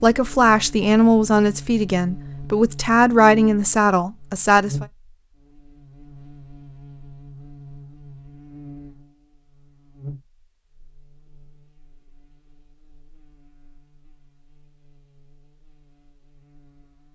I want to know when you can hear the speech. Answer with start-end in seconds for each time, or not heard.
0.0-4.8.